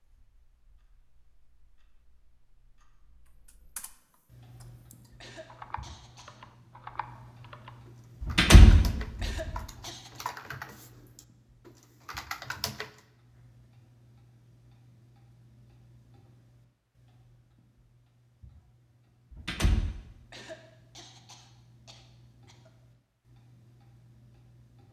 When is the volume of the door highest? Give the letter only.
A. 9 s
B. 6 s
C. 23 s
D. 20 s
A.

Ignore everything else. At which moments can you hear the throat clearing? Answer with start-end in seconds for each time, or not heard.
5.2-6.4, 9.2-10.2, 20.3-22.7.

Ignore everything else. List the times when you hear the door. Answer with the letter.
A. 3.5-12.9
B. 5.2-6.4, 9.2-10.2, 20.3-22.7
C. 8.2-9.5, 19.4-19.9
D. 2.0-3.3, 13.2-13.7
C.